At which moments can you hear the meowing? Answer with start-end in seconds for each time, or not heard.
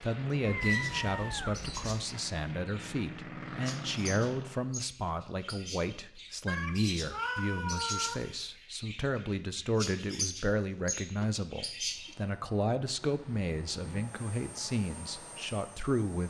0.5-2.0, 6.5-8.2, 13.1-14.1.